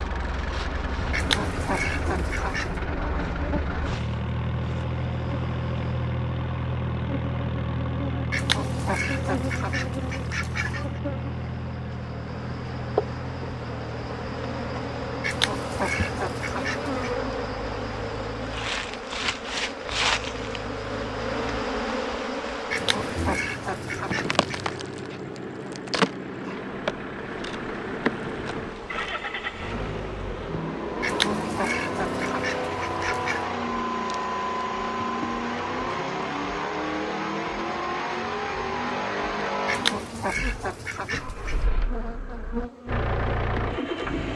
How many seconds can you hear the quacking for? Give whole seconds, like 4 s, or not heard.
13 s.